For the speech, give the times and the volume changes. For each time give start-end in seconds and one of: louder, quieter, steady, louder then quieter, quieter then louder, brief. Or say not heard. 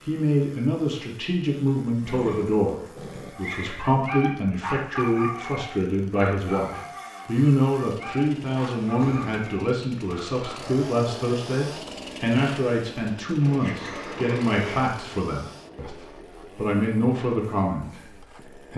0.0-18.7 steady.